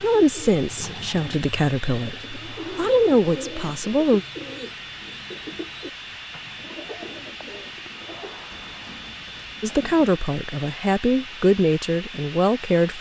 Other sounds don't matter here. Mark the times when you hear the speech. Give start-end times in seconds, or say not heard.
0.0-4.2, 9.6-12.9.